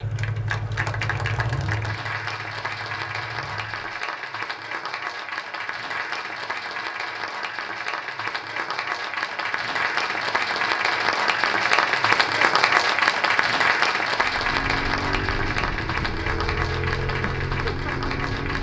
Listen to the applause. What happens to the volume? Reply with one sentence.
The volume of the applause goes up, then down.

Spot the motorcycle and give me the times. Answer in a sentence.
The motorcycle can be heard from 0.0 to 4.0 s and from 14.2 to 18.5 s.